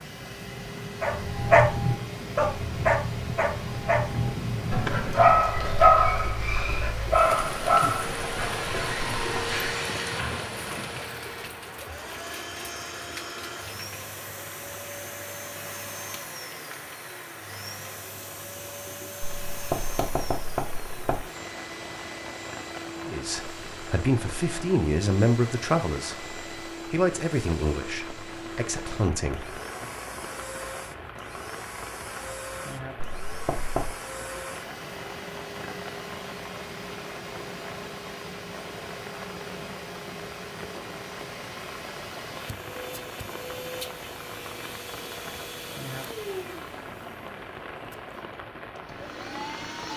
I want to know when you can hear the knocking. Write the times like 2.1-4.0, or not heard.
19.2-21.2, 33.0-34.0.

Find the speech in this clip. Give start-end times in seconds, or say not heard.
23.1-29.9.